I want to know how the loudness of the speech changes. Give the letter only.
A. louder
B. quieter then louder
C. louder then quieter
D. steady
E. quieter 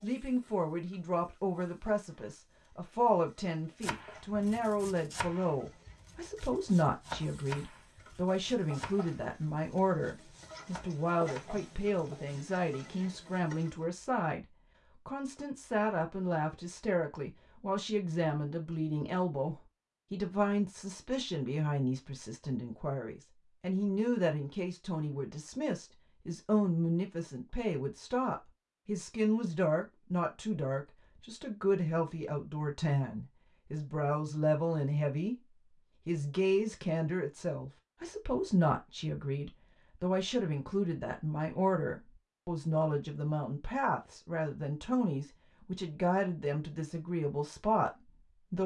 D.